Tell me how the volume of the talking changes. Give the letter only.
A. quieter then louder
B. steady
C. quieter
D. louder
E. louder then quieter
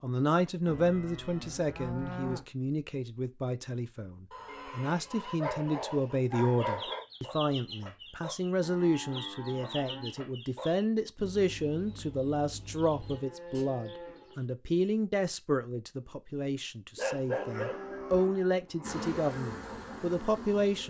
B.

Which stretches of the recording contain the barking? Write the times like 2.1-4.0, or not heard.
5.4-7.0, 16.9-18.3.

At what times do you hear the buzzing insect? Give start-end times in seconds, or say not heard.
18.8-20.8.